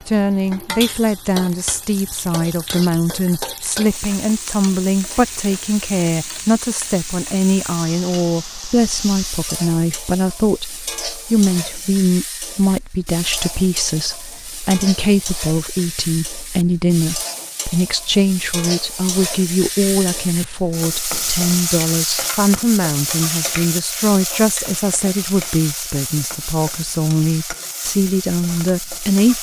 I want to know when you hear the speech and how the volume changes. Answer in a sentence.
The speech can be heard from 0.1 to 29.3 s, at a steady volume.